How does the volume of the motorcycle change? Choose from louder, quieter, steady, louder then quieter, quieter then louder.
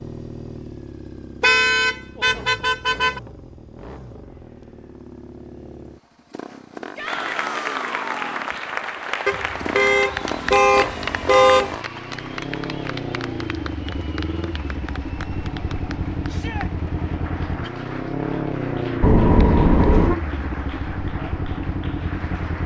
louder.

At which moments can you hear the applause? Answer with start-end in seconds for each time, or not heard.
7.0-22.6.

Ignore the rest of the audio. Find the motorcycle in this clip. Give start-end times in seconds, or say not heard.
0.0-22.6.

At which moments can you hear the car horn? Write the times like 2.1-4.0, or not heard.
1.4-3.2, 9.2-11.8, 19.0-20.1.